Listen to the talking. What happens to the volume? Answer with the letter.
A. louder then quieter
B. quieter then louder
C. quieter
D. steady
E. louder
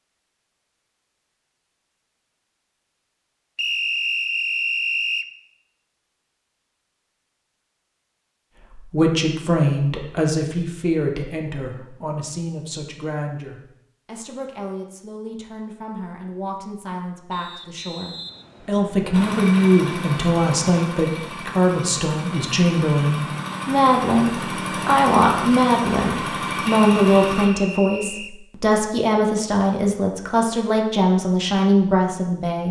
B.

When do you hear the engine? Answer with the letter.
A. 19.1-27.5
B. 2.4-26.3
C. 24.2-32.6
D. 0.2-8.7
A.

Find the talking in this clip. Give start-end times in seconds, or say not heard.
8.7-32.6.